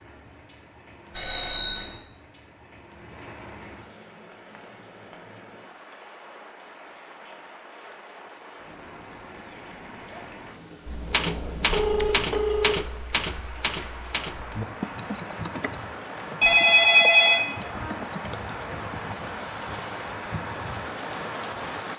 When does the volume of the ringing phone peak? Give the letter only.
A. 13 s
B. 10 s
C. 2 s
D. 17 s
D.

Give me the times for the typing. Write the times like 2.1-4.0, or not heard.
10.9-19.2.